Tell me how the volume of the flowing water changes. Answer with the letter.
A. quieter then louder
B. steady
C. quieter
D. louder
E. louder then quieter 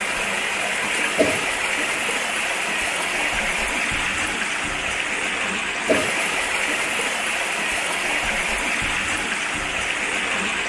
B.